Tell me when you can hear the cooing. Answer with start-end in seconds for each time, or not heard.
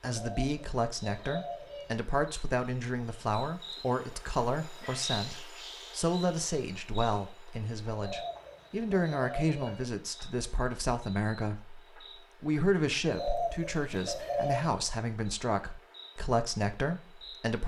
0.1-2.0, 8.0-9.8, 13.1-14.8.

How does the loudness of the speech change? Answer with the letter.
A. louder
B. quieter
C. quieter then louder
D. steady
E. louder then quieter
D.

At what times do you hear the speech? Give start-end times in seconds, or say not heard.
0.0-11.8, 12.4-17.6.